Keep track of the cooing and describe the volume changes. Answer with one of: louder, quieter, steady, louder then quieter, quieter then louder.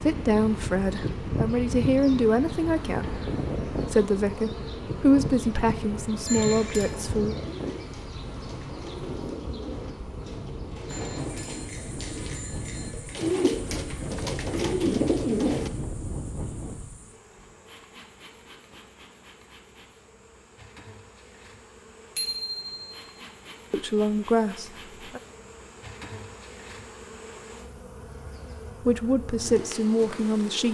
louder.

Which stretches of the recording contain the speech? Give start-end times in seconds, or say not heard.
0.0-7.3, 23.7-25.2, 28.8-30.6.